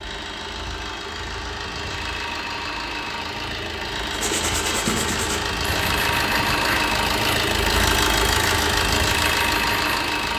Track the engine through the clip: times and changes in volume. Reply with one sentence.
The engine can be heard from 0.0 to 10.3 s, getting louder.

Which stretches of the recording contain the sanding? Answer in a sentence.
You can hear the sanding from 4.1 to 10.0 s.